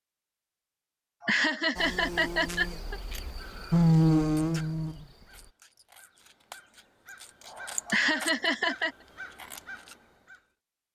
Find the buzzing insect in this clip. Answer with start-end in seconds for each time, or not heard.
1.8-5.5.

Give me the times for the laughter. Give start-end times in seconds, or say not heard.
1.2-3.0, 7.8-8.9.